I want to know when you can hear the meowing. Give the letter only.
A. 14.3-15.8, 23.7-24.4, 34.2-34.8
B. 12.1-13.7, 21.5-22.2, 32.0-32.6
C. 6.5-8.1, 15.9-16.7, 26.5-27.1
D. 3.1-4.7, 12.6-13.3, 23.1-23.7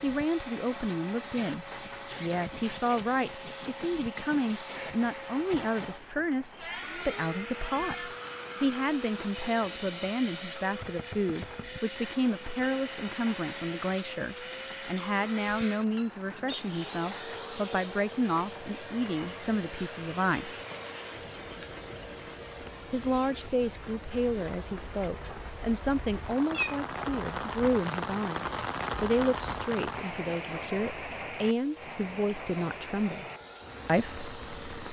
C.